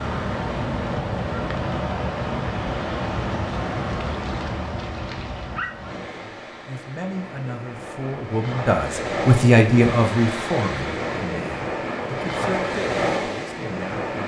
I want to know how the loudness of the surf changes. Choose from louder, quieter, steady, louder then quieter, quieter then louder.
quieter then louder.